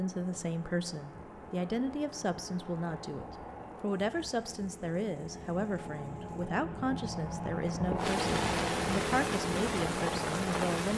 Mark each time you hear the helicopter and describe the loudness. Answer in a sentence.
The helicopter can be heard from 0.0 to 10.9 s, getting louder.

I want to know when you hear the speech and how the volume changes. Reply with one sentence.
You can hear the speech from 0.0 to 10.9 s, at a steady volume.